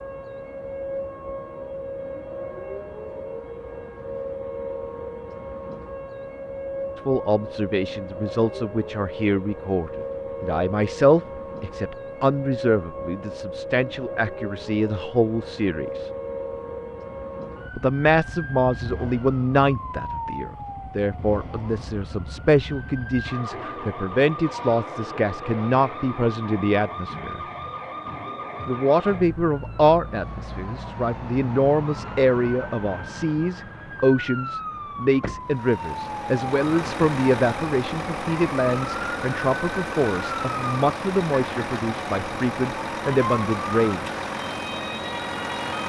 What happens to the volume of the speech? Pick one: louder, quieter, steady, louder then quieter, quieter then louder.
steady.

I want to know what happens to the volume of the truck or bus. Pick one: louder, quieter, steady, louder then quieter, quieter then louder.
steady.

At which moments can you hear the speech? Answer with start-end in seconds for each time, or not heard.
7.0-16.1, 17.8-27.4, 28.6-44.2.